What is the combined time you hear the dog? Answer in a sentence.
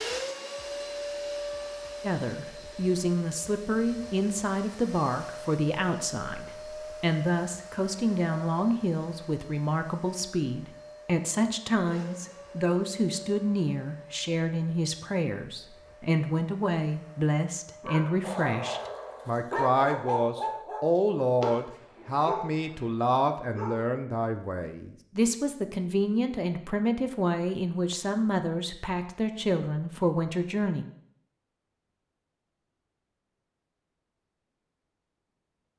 You can hear the dog for 6 seconds altogether.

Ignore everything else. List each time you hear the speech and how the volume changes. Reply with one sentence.
The speech can be heard from 2.0 to 30.9 s, at a steady volume.